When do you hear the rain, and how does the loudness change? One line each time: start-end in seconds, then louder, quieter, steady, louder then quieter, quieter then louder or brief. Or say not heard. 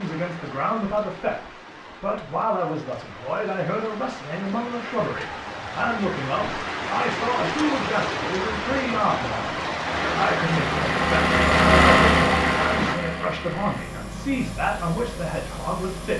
0.0-13.0 louder.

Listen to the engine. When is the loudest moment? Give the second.
12 s.